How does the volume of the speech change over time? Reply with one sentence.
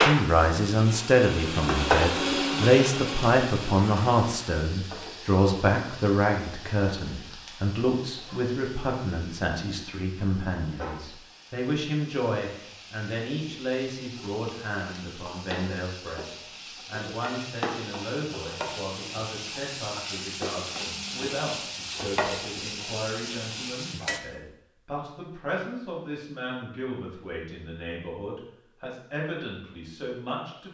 The volume of the speech goes down.